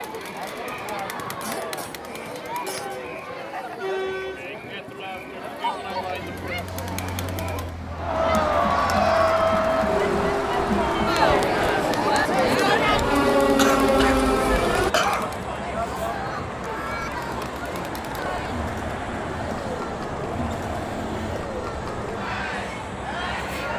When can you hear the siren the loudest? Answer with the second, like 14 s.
14 s.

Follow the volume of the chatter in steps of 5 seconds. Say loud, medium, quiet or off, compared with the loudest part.
medium, loud, loud, medium, medium.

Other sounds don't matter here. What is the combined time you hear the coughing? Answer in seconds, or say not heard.
3 s.